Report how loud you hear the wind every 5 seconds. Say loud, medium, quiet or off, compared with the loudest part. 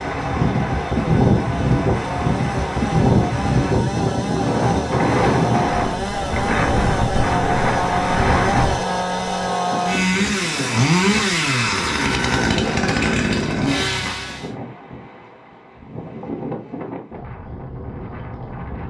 loud, loud, quiet, quiet.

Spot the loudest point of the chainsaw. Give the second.
11 s.